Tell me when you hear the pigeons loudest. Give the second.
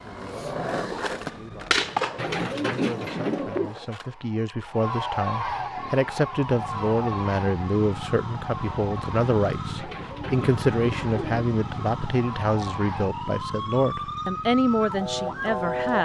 3 s.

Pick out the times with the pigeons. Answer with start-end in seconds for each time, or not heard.
2.1-3.8, 9.8-11.4.